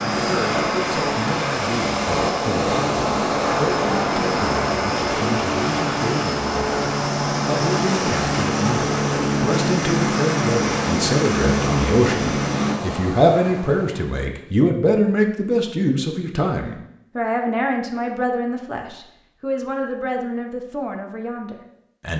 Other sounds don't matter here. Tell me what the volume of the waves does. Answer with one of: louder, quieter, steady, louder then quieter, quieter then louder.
quieter.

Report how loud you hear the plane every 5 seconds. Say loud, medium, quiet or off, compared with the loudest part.
medium, loud, loud, off, off.